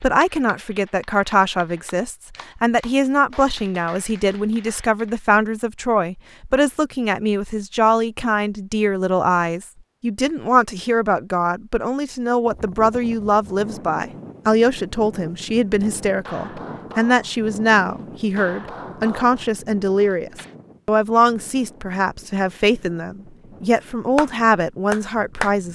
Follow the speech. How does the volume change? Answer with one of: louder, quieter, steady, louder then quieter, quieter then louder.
steady.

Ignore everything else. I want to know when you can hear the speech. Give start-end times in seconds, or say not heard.
0.0-25.7.